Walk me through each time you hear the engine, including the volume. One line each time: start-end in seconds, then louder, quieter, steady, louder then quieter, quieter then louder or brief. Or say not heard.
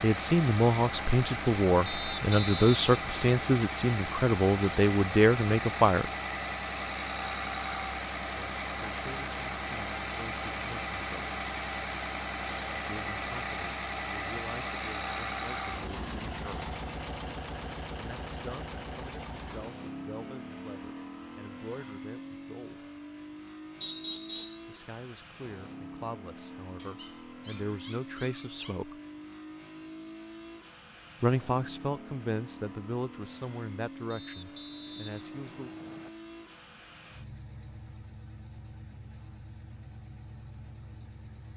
0.0-41.5 quieter.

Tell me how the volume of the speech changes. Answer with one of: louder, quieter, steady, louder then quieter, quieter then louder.
quieter then louder.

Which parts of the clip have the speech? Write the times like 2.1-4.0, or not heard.
0.0-6.0, 8.3-11.4, 12.8-16.8, 17.9-22.9, 24.6-28.9, 31.2-35.7.